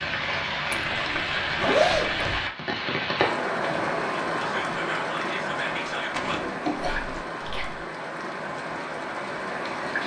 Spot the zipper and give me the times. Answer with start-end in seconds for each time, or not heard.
0.7-2.4, 6.2-7.2.